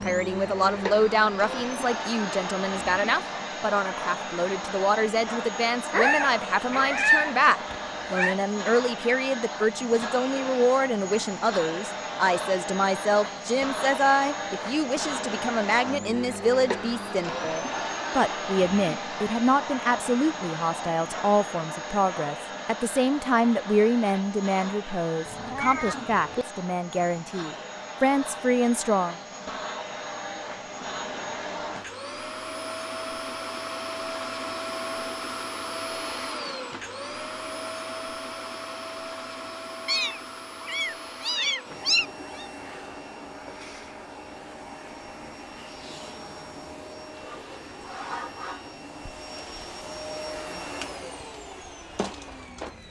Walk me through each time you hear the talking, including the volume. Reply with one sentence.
You can hear the talking from 0.0 to 29.1 s, at a steady volume.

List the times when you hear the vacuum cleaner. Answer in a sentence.
The vacuum cleaner can be heard from 0.0 to 52.8 s.